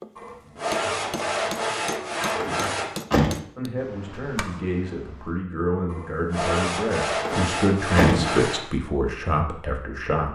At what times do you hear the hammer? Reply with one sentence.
The hammer can be heard from 0.0 to 5.3 s.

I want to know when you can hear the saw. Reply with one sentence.
You can hear the saw from 0.1 to 2.9 s and from 5.8 to 8.7 s.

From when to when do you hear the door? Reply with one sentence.
The door can be heard from 2.4 to 3.4 s and from 7.2 to 8.4 s.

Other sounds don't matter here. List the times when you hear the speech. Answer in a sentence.
The speech can be heard from 3.5 to 10.2 s.